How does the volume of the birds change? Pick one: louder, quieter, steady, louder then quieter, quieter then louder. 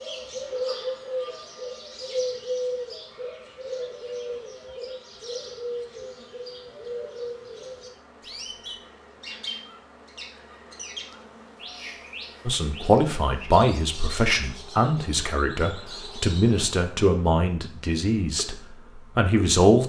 quieter.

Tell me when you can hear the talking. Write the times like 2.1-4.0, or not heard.
12.4-19.8.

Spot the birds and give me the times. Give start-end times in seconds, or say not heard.
0.0-16.7.